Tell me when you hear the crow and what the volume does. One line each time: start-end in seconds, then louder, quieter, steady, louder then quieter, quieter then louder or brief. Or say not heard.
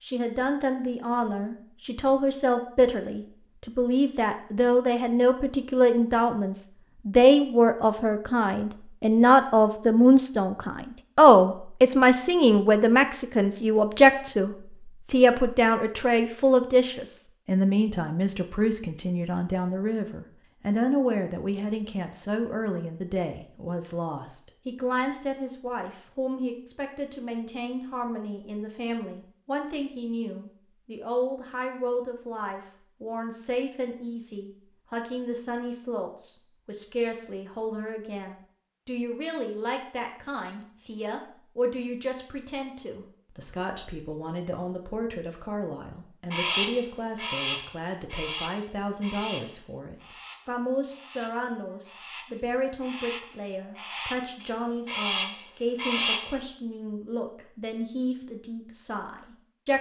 46.3-56.4 quieter then louder.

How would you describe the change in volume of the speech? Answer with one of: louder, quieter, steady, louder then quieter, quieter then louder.
quieter.